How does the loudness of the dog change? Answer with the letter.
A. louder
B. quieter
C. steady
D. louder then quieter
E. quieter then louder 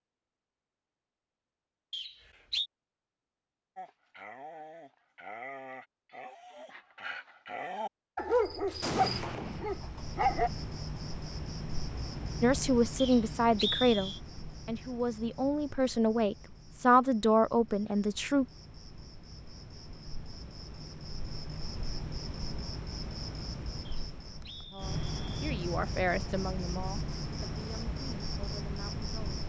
A.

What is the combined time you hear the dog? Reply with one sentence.
The dog can be heard for 7 seconds in total.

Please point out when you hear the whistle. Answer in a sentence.
You can hear the whistle from 1.9 to 2.7 s, from 12.9 to 14.2 s and from 23.9 to 25.4 s.